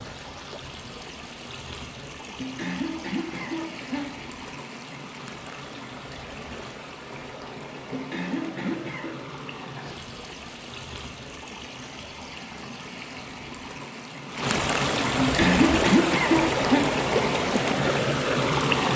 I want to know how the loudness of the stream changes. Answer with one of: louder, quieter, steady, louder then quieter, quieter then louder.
louder.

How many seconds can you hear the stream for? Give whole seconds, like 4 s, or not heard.
19 s.